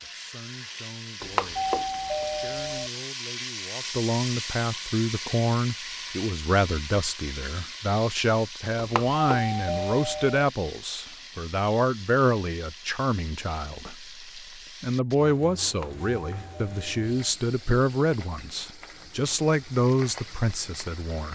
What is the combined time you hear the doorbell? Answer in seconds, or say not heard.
5 s.